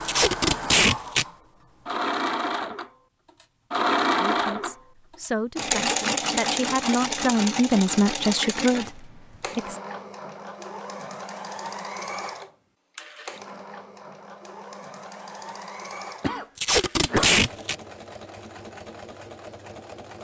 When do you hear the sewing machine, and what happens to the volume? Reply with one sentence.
The sewing machine can be heard from 0.0 to 20.1 s, getting quieter.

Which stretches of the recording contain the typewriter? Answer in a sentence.
The typewriter can't be heard in this clip.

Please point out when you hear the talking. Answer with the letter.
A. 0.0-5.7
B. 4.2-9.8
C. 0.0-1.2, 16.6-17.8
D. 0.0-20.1
B.